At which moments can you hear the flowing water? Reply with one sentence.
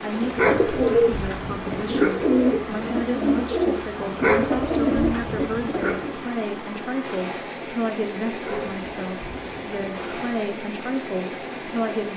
You can hear the flowing water from 0.0 to 12.1 s.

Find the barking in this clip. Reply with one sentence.
The barking can be heard from 0.3 to 2.4 s, from 4.2 to 6.0 s and from 8.4 to 10.3 s.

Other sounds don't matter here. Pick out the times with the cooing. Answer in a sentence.
The cooing can be heard from 0.1 to 6.2 s.